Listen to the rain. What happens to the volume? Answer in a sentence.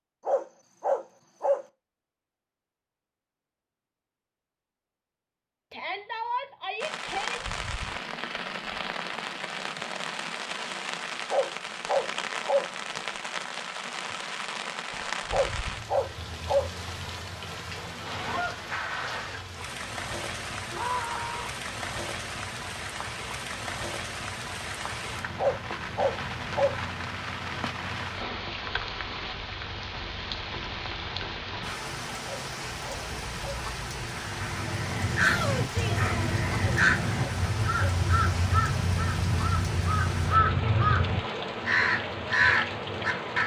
The loudness of the rain stays about the same.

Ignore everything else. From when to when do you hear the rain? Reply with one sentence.
The rain can be heard from 6.8 to 43.4 s.